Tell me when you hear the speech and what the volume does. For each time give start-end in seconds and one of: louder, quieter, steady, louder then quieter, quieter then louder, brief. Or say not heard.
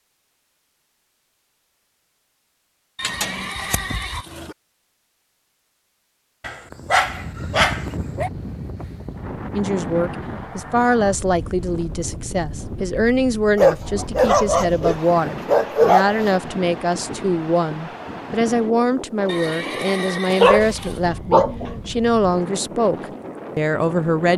9.6-24.3 steady.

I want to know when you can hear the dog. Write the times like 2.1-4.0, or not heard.
3.0-4.5, 6.4-8.3, 13.6-16.4, 20.3-21.8.